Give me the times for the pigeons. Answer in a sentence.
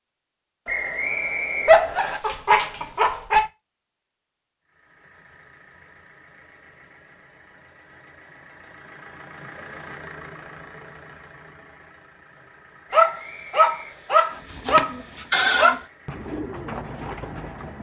The pigeons can be heard from 14.3 to 17.7 s.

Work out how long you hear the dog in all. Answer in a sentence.
The dog can be heard for 5 seconds in total.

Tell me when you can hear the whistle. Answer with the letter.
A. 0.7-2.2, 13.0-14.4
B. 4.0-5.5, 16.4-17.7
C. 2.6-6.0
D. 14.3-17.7
A.